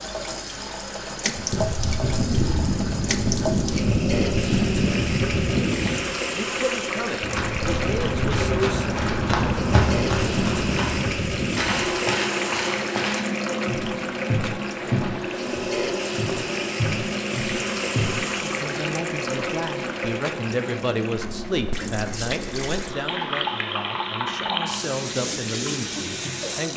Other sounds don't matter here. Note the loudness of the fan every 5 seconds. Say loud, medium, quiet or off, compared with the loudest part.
loud, loud, loud, medium, medium, quiet.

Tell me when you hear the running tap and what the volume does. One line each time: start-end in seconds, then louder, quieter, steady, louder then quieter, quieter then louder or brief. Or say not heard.
0.0-26.7 steady.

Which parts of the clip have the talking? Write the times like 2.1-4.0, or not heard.
6.3-9.0, 18.4-26.7.